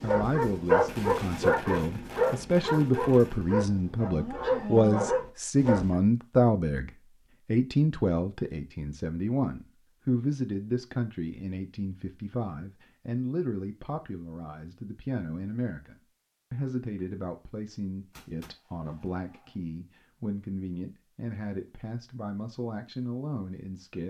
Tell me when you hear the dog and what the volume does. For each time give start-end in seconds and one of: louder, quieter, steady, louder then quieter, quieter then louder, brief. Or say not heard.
0.0-6.0 quieter then louder.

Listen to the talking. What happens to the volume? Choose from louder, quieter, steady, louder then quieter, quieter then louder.
quieter.